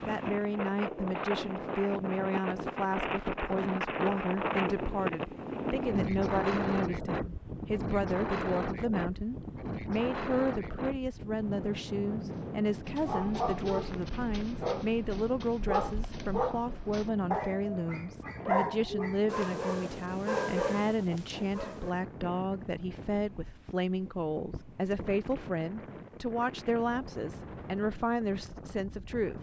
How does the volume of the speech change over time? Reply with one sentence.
The loudness of the speech stays about the same.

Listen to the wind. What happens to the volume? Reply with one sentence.
The volume of the wind goes down.